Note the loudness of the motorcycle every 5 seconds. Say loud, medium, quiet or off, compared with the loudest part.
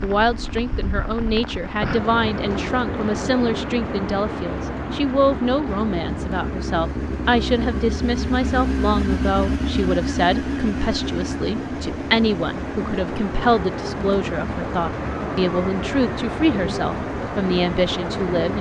medium, loud, loud, medium.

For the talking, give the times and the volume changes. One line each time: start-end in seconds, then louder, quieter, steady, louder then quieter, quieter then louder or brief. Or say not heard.
0.0-18.5 steady.